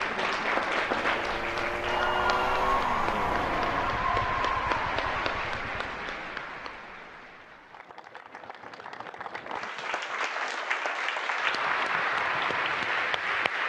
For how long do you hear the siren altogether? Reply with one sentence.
The siren can't be heard in this clip.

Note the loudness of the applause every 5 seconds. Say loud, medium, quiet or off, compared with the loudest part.
loud, medium, loud.